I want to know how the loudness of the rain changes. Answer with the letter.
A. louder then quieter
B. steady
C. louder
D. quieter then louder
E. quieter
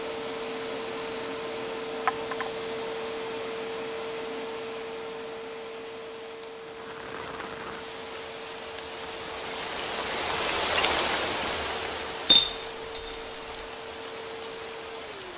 A.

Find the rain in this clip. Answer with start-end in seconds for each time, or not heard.
6.5-15.3.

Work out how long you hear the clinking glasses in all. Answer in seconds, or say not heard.
2 s.